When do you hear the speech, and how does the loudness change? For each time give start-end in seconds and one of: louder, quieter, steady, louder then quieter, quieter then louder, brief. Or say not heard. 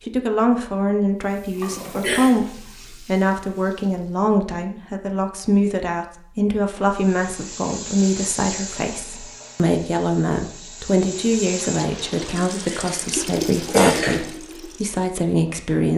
0.1-15.9 steady.